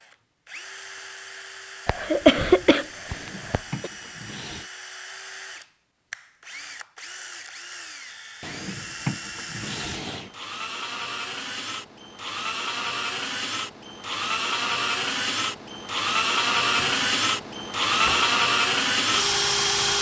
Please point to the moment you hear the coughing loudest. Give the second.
2 s.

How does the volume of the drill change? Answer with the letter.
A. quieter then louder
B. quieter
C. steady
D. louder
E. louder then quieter
D.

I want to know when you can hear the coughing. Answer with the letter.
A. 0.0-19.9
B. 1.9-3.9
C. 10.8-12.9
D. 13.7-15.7
B.